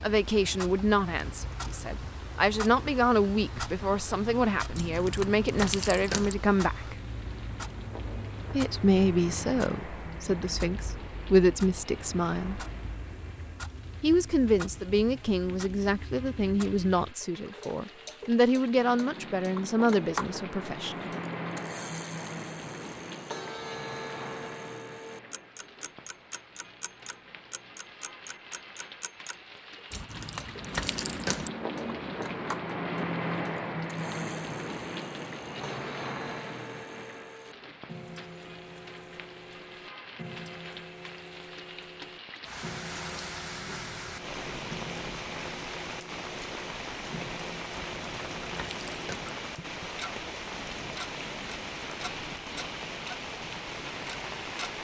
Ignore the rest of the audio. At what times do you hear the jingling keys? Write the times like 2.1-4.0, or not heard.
4.8-6.3, 29.9-31.5, 47.9-49.3.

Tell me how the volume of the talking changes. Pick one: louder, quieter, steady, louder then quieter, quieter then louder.
steady.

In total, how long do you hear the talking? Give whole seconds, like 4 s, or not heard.
18 s.